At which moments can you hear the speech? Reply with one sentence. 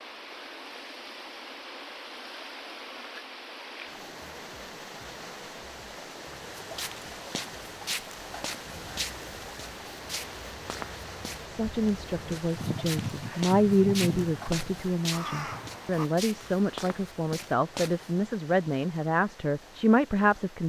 The speech can be heard from 11.4 to 20.6 s.